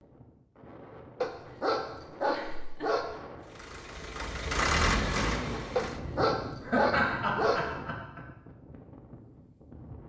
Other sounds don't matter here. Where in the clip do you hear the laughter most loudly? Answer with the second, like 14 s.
7 s.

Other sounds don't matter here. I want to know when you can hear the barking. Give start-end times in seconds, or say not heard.
1.2-3.1, 5.8-7.7.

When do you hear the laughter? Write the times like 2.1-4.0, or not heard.
2.2-2.9, 6.7-8.2.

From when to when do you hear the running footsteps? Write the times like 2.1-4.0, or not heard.
not heard.